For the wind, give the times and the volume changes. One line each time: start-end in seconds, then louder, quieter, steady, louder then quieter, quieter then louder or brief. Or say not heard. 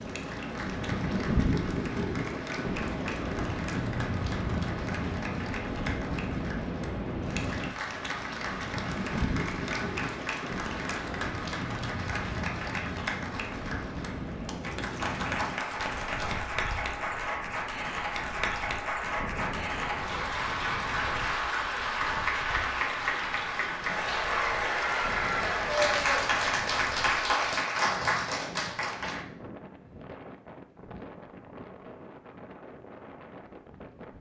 0.0-34.1 quieter.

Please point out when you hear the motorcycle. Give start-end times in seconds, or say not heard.
not heard.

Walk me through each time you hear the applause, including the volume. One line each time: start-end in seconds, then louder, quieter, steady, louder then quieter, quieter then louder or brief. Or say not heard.
0.0-29.2 louder.